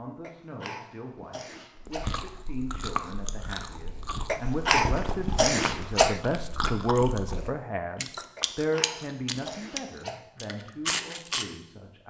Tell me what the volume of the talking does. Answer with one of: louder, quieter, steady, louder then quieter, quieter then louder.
louder then quieter.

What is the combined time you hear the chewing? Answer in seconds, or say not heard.
10 s.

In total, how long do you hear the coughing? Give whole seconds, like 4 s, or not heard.
6 s.